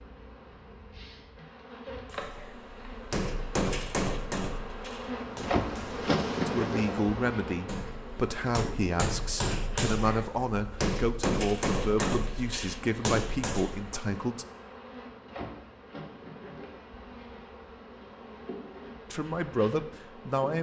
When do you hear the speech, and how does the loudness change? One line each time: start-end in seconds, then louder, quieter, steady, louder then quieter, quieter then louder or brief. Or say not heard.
6.5-14.4 steady
19.1-20.5 brief.